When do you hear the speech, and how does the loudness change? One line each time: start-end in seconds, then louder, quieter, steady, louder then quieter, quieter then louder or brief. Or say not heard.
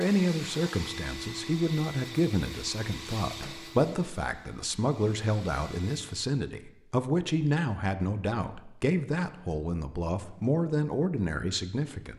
0.0-12.1 steady.